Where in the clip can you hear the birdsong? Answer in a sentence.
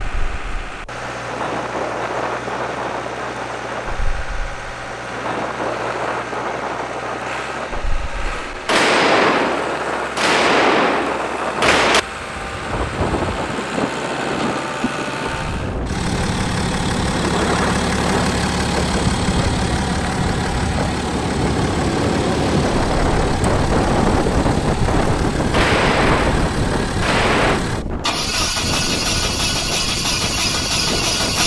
The birdsong can't be heard in this clip.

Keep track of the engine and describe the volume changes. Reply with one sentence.
The loudness of the engine goes up.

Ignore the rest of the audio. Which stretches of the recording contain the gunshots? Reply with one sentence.
The gunshots can be heard from 8.2 to 12.0 s and from 25.4 to 27.6 s.